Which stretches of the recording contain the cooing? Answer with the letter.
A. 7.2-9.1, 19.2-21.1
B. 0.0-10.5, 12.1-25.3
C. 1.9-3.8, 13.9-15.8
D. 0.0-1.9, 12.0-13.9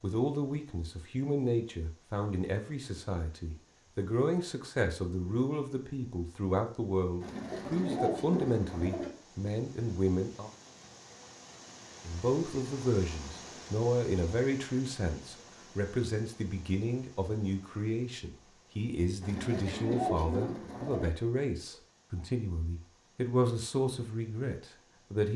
A.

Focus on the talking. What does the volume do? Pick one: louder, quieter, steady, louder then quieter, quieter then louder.
steady.